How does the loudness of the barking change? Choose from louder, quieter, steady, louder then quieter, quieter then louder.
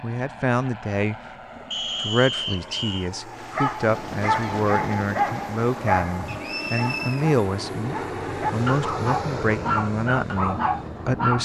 quieter then louder.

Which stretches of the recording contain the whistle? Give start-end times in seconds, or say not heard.
1.7-3.1, 6.2-7.2.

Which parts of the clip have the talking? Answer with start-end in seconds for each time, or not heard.
0.0-11.4.